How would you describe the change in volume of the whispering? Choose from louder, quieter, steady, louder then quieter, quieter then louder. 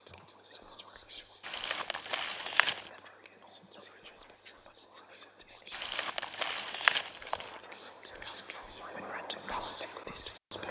louder.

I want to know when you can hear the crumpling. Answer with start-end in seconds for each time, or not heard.
1.4-2.9, 5.7-7.6.